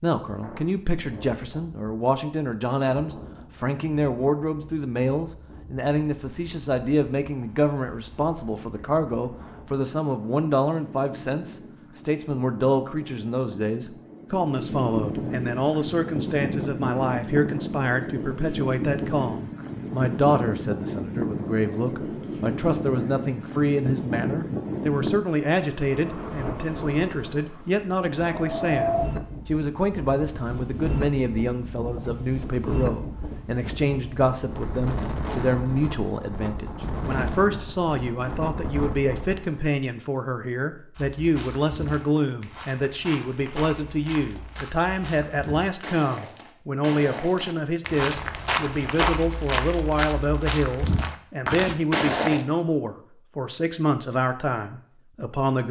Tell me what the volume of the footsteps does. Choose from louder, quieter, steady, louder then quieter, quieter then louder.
louder.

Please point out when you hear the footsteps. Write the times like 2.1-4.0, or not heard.
41.0-52.5.